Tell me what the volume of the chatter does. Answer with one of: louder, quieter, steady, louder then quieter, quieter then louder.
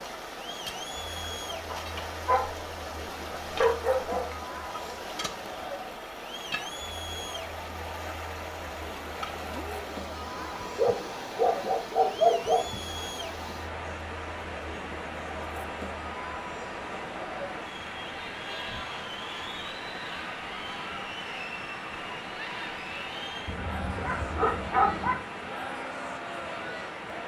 steady.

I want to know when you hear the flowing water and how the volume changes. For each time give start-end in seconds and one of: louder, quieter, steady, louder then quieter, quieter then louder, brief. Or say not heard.
0.0-27.2 steady.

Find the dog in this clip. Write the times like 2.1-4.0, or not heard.
1.7-2.5, 3.5-4.3, 10.8-12.6, 23.4-25.2.